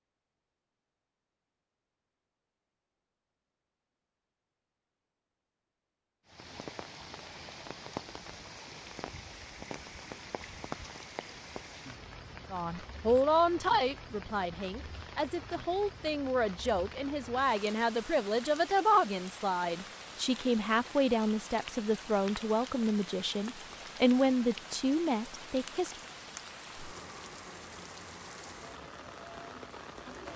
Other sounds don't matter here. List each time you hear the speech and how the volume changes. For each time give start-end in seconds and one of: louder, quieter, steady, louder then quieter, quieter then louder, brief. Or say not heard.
12.5-25.9 steady.